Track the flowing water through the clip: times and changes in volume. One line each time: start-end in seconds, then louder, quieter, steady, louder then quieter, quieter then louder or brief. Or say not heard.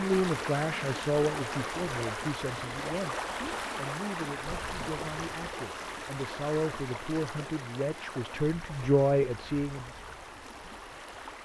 0.0-11.4 quieter.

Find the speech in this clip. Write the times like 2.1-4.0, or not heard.
0.0-9.9.